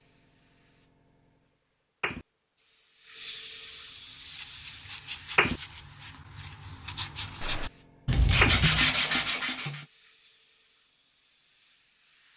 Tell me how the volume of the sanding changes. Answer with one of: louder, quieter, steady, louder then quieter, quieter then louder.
louder.